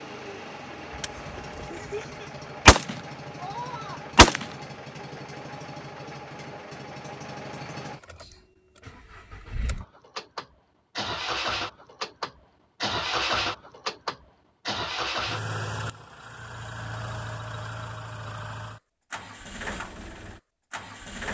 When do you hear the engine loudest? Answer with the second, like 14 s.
13 s.